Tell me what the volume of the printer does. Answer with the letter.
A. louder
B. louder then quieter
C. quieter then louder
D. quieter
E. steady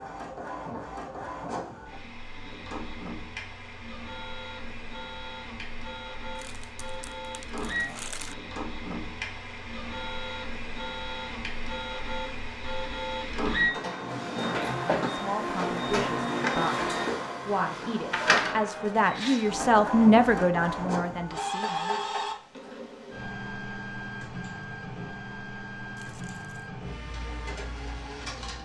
B.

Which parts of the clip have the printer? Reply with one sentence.
The printer can be heard from 0.0 to 28.6 s.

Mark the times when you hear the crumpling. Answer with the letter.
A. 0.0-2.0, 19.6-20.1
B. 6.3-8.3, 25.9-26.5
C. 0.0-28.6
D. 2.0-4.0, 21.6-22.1
B.